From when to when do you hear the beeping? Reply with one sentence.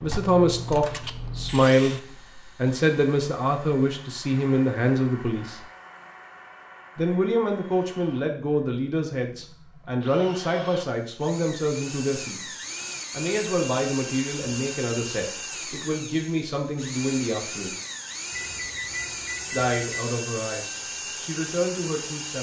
You can hear the beeping from 18.3 to 20.1 s.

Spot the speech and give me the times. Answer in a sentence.
You can hear the speech from 0.0 to 5.6 s, from 7.0 to 17.8 s and from 19.5 to 22.3 s.